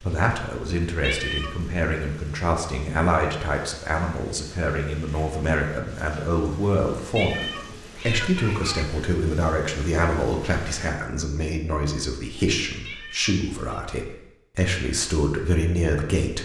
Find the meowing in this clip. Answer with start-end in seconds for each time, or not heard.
1.0-1.7, 7.2-8.8, 12.8-13.8.